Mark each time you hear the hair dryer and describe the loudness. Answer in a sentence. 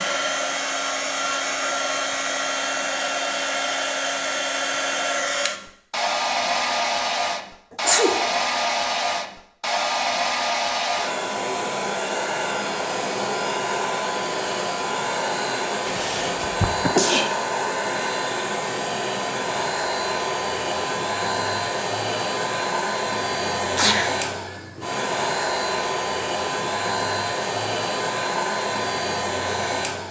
The hair dryer can be heard from 0.0 to 30.0 s, at a steady volume.